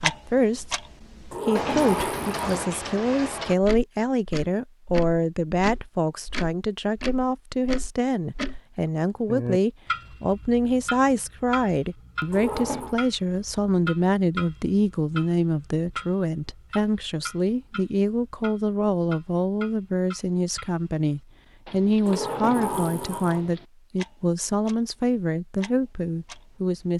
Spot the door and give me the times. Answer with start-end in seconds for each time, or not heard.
1.3-2.8, 12.3-12.9, 22.1-23.5.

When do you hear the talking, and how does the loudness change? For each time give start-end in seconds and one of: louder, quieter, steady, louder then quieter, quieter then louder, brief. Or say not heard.
0.0-0.8 brief
1.4-26.9 steady.